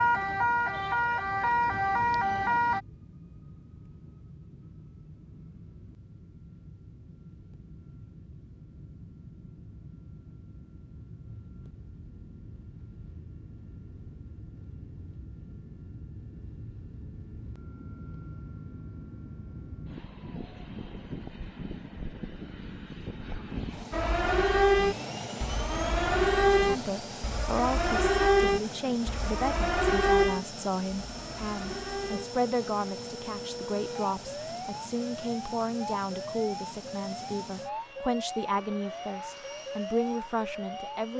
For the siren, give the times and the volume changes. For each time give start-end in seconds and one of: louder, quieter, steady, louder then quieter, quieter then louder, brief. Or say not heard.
0.0-2.8 brief
23.9-41.0 quieter.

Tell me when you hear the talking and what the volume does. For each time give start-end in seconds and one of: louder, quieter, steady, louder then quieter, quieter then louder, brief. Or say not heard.
26.6-41.1 steady.